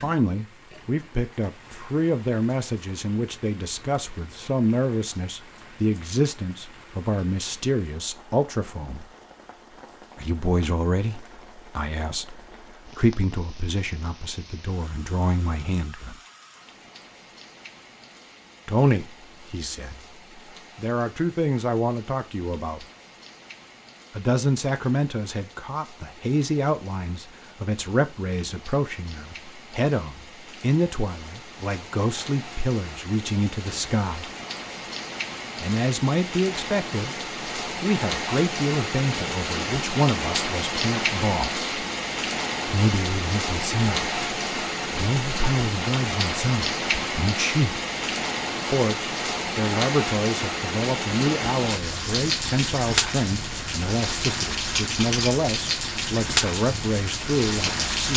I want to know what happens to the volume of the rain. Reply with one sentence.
The volume of the rain goes up.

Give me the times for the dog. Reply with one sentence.
The dog can't be heard in this clip.